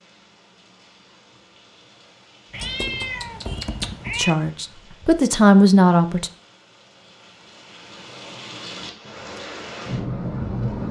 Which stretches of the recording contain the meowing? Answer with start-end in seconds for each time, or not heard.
2.5-4.3.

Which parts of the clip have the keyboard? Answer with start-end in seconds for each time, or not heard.
2.5-5.1.